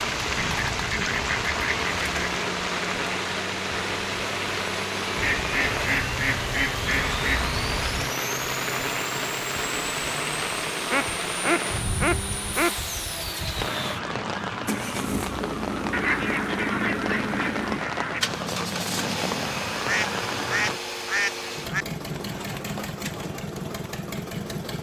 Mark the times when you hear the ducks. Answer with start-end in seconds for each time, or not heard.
0.2-2.3, 5.2-8.1, 10.8-12.7, 15.9-18.2, 19.9-21.9.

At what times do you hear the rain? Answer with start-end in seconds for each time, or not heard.
0.0-20.8.